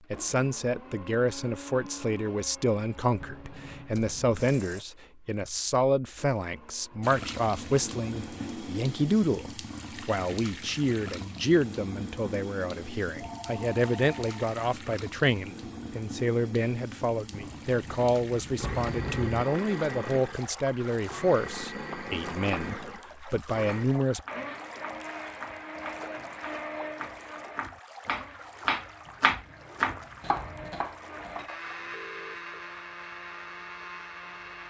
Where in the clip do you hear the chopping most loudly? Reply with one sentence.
The loudest moment of the chopping is at 29 seconds.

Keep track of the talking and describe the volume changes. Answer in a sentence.
The volume of the talking stays about the same.